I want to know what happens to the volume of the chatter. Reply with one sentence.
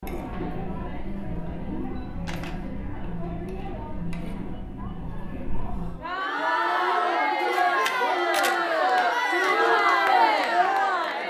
The volume of the chatter goes up.